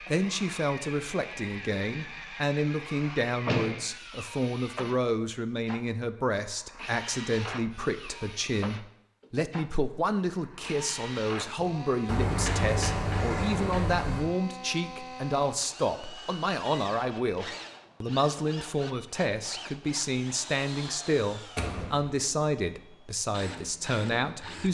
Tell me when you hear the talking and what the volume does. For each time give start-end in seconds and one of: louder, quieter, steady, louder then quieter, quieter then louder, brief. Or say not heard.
0.1-24.6 steady.